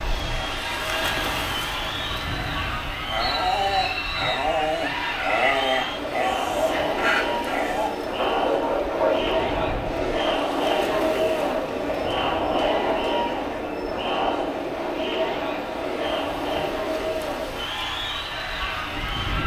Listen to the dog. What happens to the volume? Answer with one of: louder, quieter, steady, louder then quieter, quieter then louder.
steady.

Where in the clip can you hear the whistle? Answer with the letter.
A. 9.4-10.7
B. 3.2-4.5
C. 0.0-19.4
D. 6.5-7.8
B.